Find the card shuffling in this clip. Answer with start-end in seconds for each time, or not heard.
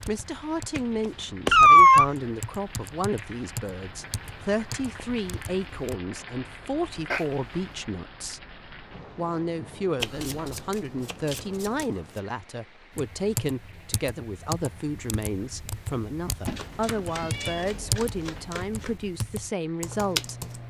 0.8-1.6, 10.0-12.2, 16.6-19.1.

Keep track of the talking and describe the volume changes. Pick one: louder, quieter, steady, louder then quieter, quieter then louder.
steady.